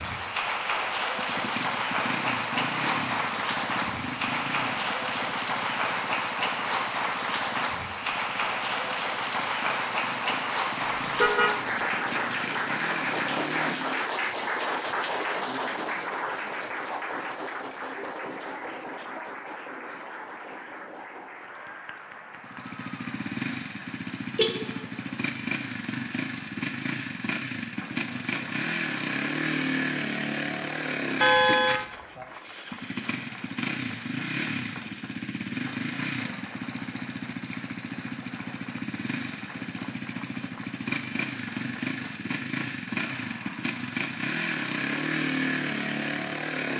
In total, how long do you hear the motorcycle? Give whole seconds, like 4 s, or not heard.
38 s.